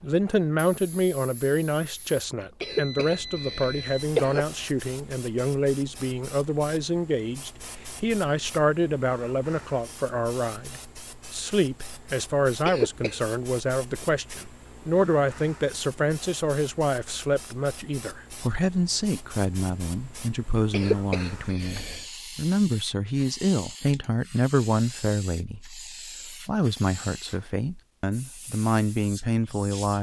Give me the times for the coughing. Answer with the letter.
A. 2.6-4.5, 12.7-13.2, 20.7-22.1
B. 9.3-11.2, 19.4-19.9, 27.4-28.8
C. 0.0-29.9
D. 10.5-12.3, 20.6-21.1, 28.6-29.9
A.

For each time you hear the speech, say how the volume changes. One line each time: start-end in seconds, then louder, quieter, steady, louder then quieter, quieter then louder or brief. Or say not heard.
0.0-29.9 steady.